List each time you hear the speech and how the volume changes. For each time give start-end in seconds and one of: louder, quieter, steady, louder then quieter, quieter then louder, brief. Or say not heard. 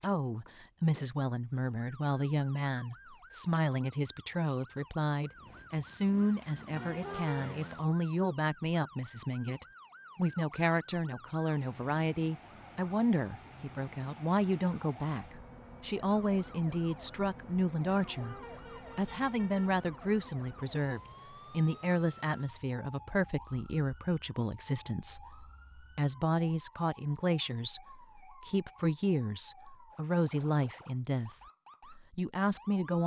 0.0-33.0 steady.